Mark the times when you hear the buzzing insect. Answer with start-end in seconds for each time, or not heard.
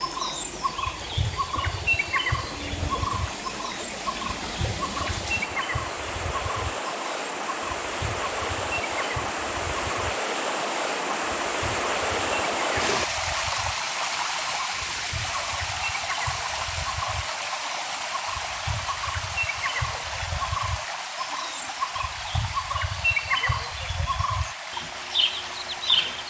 not heard.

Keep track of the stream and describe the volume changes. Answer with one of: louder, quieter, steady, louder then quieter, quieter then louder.
louder then quieter.